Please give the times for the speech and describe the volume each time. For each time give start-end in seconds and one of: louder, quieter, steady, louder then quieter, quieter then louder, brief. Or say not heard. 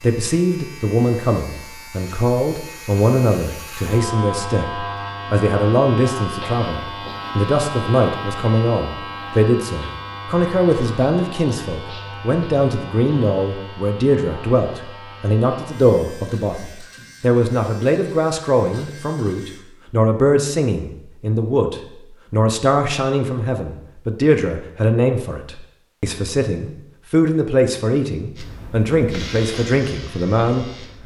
0.0-31.0 steady.